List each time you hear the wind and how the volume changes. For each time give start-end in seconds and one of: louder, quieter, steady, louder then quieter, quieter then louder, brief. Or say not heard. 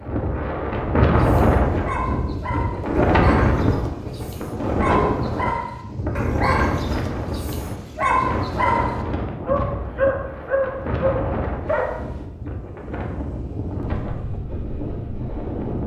0.0-15.8 quieter.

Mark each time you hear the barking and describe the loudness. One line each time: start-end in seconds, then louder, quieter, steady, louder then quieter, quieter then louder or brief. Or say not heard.
1.1-11.9 louder.